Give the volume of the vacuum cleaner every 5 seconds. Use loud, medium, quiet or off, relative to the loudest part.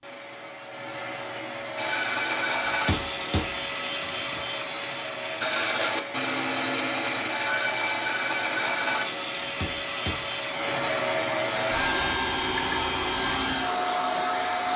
medium, medium, loud.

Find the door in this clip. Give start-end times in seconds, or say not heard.
not heard.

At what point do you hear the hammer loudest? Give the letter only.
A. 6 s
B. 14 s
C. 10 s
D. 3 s
D.